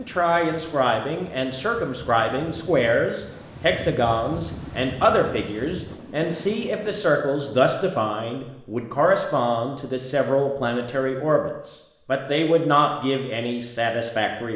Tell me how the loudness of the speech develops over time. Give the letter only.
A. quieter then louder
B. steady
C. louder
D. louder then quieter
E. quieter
B.